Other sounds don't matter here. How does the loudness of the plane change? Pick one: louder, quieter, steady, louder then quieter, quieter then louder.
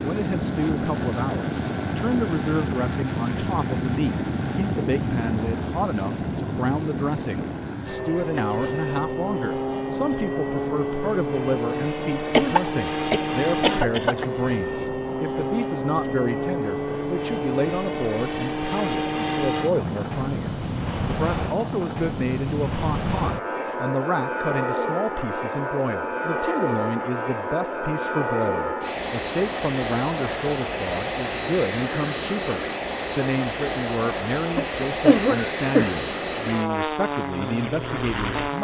steady.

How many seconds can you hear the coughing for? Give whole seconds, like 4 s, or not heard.
3 s.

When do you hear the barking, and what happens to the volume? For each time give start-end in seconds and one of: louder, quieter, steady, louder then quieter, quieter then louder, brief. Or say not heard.
not heard.